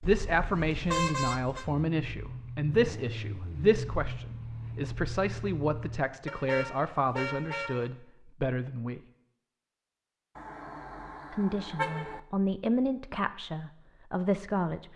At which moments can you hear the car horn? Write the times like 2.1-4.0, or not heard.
0.0-1.6, 6.2-7.9, 10.3-12.2.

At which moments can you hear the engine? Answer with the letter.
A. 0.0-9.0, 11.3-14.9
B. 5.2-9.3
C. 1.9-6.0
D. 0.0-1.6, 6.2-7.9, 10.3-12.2
C.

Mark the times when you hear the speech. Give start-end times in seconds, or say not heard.
0.0-9.0, 11.3-14.9.